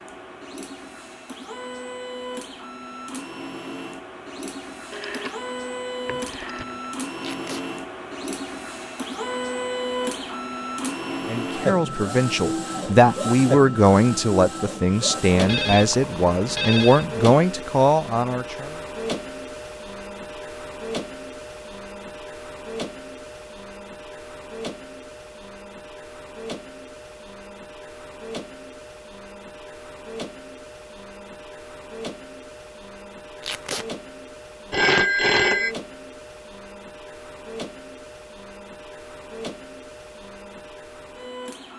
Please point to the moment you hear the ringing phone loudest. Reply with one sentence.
The volume of the ringing phone peaks at 35 seconds.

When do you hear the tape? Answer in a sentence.
The tape can be heard from 7.2 to 7.7 s and from 33.4 to 33.9 s.